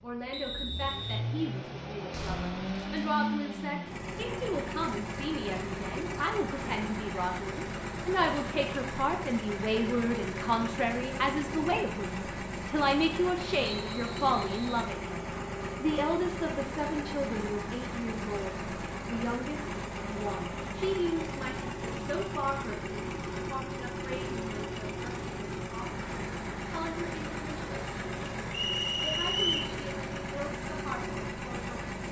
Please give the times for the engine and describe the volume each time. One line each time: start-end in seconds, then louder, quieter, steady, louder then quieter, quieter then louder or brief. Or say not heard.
0.0-32.0 steady.